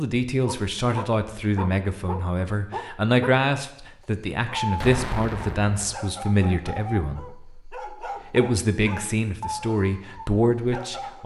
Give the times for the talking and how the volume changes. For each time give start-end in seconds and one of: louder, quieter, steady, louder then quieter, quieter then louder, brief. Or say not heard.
0.0-11.2 steady.